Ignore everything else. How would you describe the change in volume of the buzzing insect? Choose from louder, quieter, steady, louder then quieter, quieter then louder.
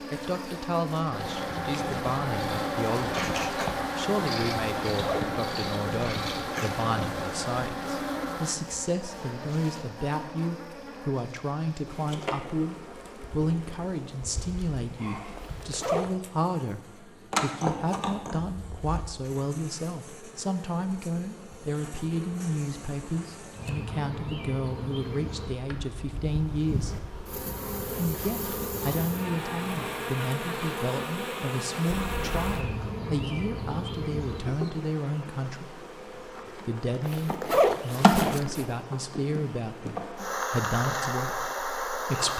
quieter then louder.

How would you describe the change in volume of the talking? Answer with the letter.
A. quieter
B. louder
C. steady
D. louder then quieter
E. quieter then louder
C.